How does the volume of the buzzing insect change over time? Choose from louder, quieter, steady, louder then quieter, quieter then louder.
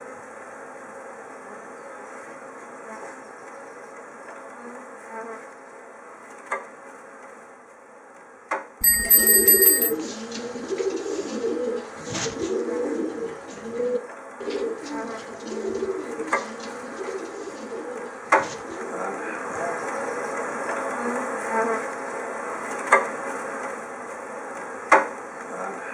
louder.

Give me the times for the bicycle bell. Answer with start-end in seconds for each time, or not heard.
8.8-9.9.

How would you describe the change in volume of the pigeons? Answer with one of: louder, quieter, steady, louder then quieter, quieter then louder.
quieter.